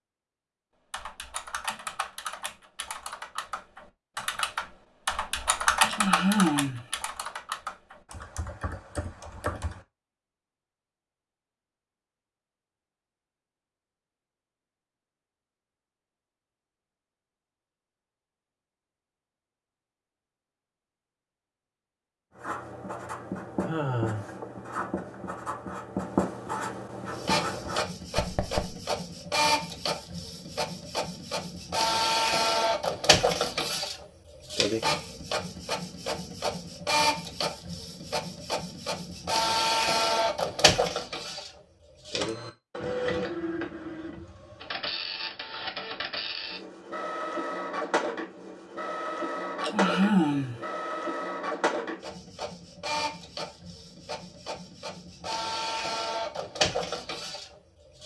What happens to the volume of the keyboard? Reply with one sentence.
The loudness of the keyboard goes up, then down.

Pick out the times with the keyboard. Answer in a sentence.
The keyboard can be heard from 0.9 to 9.8 s.